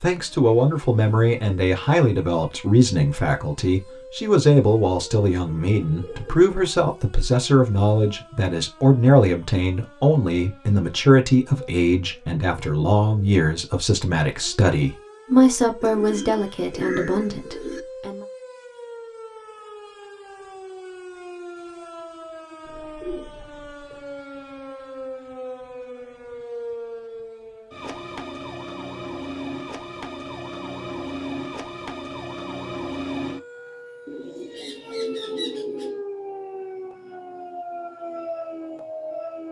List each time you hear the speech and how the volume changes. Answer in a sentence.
You can hear the speech from 0.0 to 18.2 s, at a steady volume.